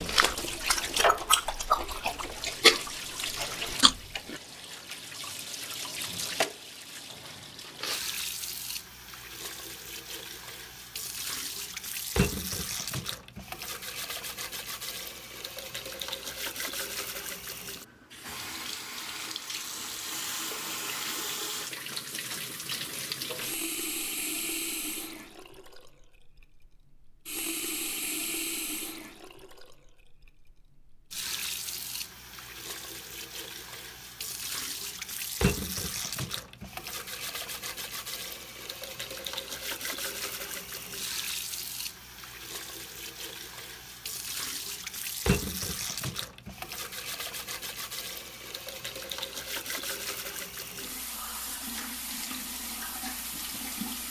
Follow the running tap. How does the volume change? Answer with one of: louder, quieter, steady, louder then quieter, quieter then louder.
steady.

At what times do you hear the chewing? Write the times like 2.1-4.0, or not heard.
0.0-4.4.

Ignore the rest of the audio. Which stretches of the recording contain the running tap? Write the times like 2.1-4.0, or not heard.
0.0-54.0.